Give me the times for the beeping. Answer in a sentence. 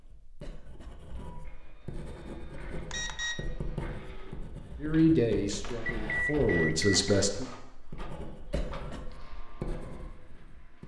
The beeping can be heard from 2.8 to 3.5 s and from 5.8 to 7.0 s.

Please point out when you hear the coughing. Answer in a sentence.
You can hear the coughing from 0.4 to 1.0 s and from 8.5 to 9.1 s.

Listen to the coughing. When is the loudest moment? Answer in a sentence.
The loudest moment of the coughing is at 9 seconds.